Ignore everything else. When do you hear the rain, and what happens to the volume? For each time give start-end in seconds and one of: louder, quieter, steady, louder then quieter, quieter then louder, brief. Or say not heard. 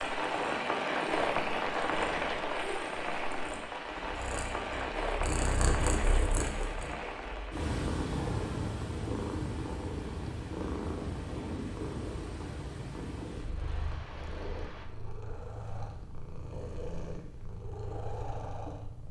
0.0-14.9 quieter.